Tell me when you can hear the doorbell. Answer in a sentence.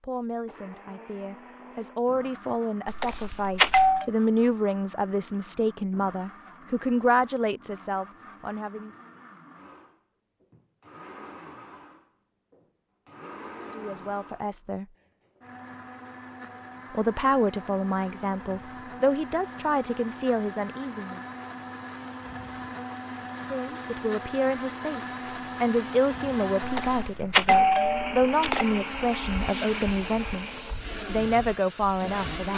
The doorbell can be heard from 2.9 to 4.0 s and from 26.6 to 28.6 s.